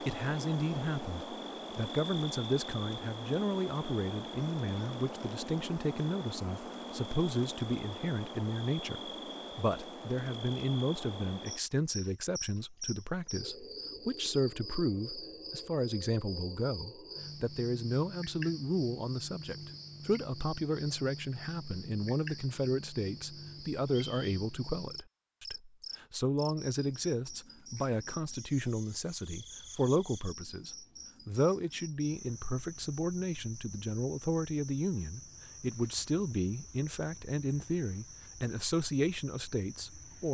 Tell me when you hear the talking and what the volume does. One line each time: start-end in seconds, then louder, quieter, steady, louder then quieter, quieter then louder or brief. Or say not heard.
0.0-40.3 steady.